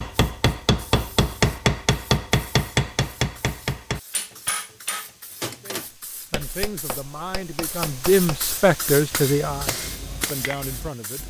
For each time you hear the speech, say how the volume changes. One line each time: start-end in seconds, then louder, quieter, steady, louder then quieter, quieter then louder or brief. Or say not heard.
5.6-11.2 louder then quieter.